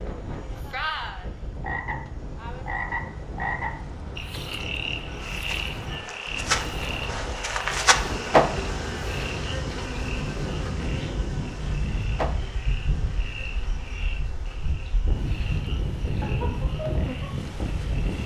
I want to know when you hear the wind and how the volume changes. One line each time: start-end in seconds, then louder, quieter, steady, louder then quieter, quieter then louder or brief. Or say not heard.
0.0-18.2 louder.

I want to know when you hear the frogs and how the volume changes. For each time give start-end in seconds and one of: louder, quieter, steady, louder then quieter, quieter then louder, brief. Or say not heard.
0.2-18.2 quieter.